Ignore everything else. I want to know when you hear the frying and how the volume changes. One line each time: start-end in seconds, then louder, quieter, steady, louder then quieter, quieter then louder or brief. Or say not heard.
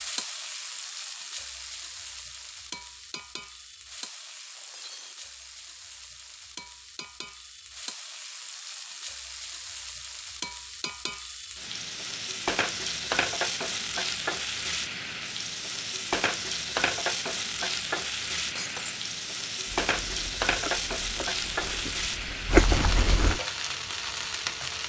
0.0-24.8 louder.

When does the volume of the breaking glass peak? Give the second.
19 s.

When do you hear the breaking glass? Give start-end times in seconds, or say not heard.
4.5-5.3, 18.6-19.0.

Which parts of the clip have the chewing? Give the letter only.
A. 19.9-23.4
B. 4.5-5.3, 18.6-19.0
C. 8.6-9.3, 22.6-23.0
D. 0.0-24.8
A.